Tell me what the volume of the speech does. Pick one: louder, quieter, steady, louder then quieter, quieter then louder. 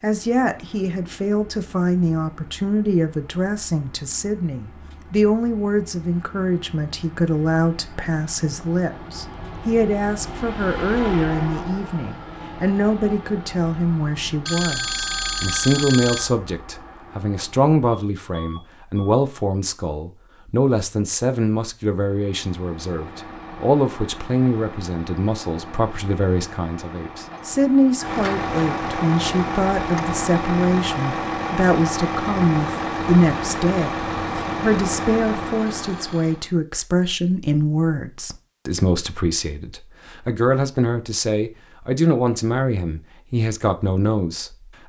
steady.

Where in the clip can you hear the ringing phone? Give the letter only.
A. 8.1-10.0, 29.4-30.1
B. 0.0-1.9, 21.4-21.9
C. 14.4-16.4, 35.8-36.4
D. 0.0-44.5
C.